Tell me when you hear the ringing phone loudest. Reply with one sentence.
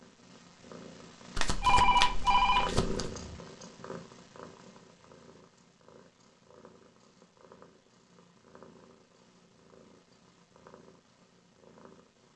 The loudest moment of the ringing phone is at 2 seconds.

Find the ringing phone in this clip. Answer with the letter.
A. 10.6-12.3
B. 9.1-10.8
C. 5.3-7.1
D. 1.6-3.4
D.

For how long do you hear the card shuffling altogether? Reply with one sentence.
You can hear the card shuffling for 2 seconds altogether.